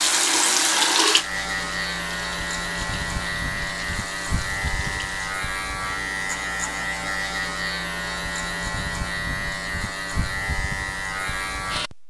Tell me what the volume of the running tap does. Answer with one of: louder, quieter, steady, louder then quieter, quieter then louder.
quieter.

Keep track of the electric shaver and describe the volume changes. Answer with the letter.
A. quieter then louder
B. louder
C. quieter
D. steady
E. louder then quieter
D.